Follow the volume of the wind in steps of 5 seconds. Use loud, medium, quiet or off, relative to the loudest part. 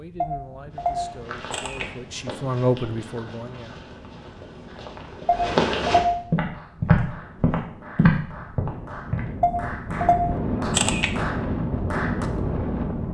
quiet, quiet, loud.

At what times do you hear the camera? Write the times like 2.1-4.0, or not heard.
0.2-1.9, 5.2-6.2, 9.4-11.1.